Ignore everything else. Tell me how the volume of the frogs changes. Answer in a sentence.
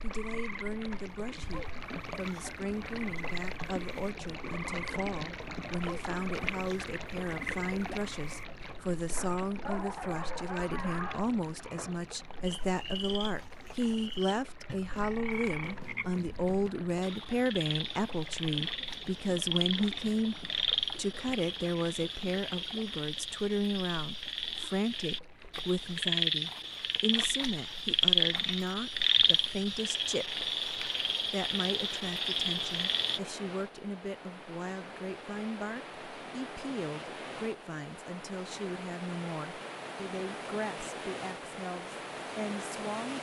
The volume of the frogs goes up.